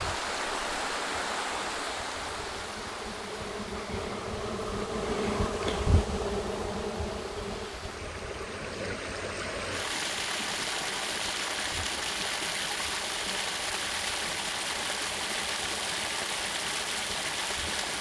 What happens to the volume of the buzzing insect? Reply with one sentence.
The loudness of the buzzing insect goes up, then down.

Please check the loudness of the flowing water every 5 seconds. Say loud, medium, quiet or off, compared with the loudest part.
loud, medium, loud, loud.